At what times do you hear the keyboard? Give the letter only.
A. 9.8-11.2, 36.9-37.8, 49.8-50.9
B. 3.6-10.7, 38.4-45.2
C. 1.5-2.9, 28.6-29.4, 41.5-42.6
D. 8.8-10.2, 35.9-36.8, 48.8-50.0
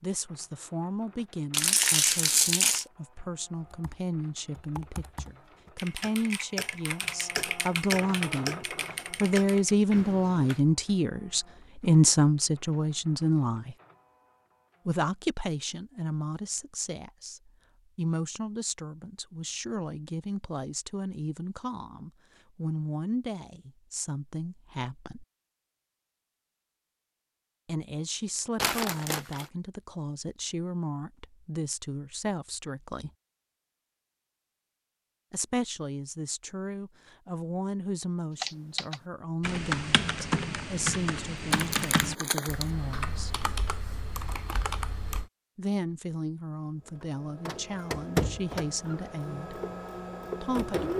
B.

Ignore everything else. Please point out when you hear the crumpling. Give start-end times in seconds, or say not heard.
1.5-2.9, 28.6-29.4, 41.5-42.6.